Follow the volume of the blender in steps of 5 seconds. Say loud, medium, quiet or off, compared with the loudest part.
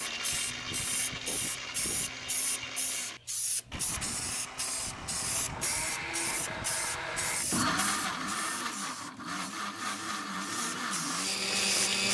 medium, loud, loud.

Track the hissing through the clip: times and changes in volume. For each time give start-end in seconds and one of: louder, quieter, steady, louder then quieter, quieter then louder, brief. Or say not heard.
0.0-12.0 steady.